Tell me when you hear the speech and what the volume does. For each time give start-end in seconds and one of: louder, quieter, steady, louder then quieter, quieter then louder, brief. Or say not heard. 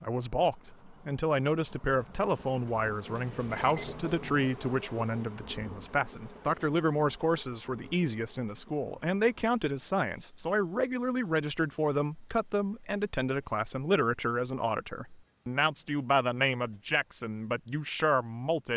0.0-18.7 steady.